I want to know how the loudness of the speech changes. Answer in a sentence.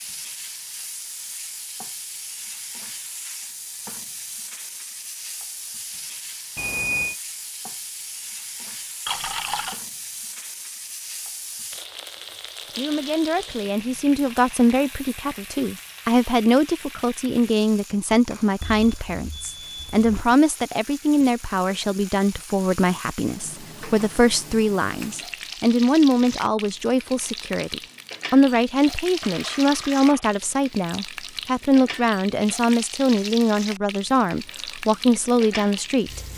The loudness of the speech stays about the same.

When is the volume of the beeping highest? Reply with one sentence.
The volume of the beeping peaks at 7 seconds.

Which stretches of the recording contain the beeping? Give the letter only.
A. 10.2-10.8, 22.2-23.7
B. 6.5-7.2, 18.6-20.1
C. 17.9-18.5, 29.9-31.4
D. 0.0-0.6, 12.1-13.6
B.